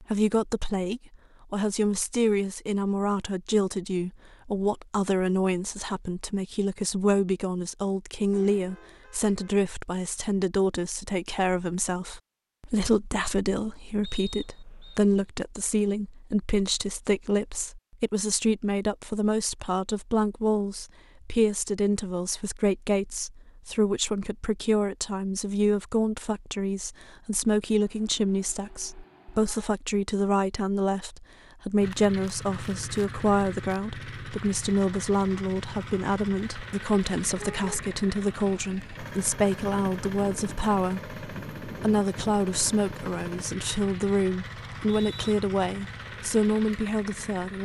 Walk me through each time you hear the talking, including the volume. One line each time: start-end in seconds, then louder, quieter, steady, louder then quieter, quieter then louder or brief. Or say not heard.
0.0-47.6 steady.